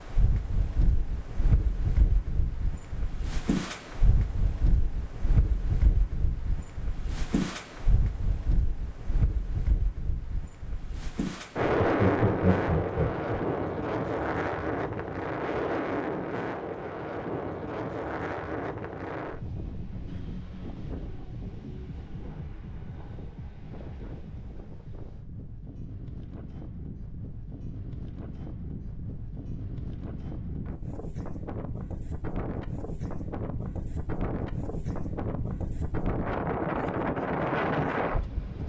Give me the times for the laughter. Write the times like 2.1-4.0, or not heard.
11.6-13.3.